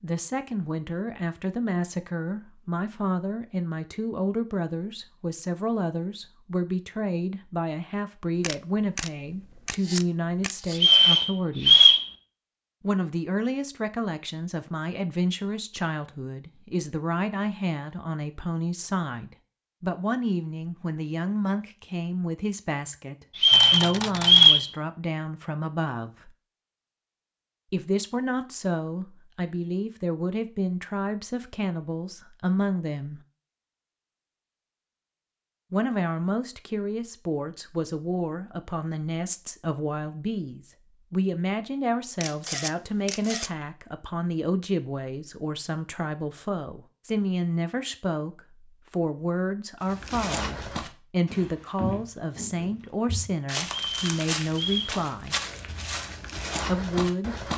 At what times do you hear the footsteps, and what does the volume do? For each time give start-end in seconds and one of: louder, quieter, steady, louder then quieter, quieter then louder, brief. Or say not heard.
49.9-57.5 steady.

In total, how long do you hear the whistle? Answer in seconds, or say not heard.
4 s.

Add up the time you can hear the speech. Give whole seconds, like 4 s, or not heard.
51 s.